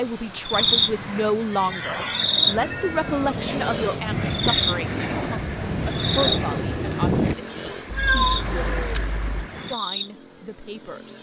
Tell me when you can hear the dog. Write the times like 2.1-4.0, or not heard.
not heard.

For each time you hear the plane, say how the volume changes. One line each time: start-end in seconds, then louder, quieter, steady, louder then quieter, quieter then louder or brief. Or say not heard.
0.0-9.8 louder then quieter.